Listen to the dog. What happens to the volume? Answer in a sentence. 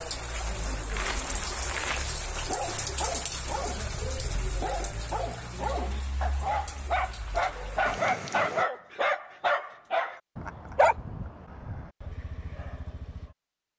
The volume of the dog goes up, then down.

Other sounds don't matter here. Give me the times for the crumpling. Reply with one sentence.
You can hear the crumpling from 0.8 to 2.2 s.